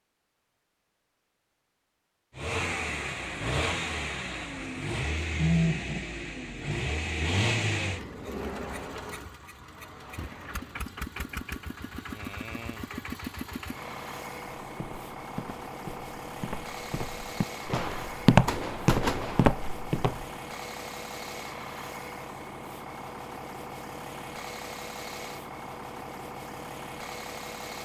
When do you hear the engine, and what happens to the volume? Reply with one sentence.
You can hear the engine from 2.4 to 27.8 s, getting quieter.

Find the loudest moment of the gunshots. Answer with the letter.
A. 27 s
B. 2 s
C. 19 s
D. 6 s
C.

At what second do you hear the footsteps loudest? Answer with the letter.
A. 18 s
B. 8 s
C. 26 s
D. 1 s
A.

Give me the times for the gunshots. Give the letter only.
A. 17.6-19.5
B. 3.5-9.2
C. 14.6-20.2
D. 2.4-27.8
A.